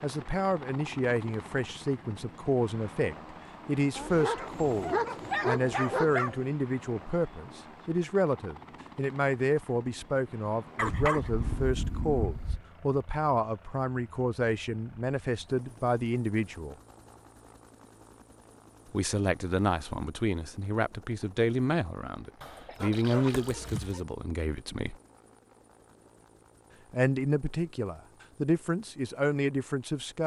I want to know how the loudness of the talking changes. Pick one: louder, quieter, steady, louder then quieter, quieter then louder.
steady.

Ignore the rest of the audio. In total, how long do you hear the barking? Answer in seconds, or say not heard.
6 s.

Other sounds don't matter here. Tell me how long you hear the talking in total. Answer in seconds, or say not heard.
26 s.